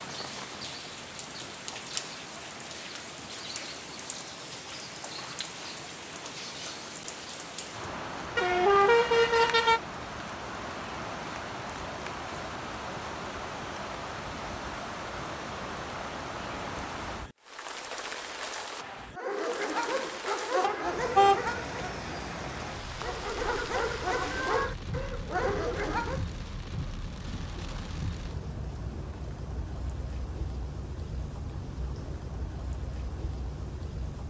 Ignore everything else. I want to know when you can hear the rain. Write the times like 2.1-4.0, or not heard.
0.0-34.2.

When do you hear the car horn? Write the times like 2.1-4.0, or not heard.
8.3-9.8, 20.6-21.4.